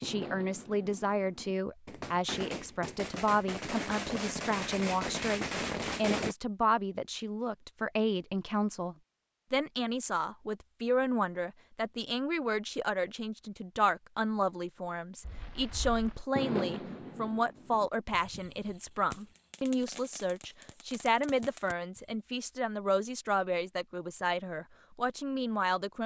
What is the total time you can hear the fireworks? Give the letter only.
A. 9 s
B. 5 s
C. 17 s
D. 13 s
D.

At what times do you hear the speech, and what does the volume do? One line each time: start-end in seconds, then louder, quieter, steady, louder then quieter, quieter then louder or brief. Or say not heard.
0.0-26.0 steady.